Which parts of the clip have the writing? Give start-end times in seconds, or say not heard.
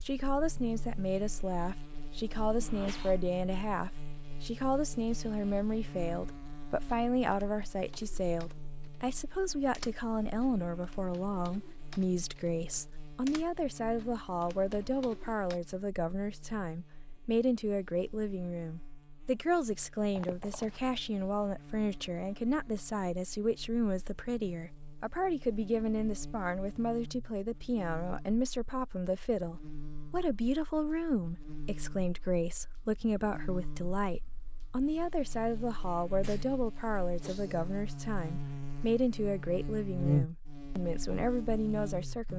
not heard.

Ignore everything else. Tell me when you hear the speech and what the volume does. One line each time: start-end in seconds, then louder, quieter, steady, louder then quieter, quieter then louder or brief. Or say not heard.
0.1-42.3 steady.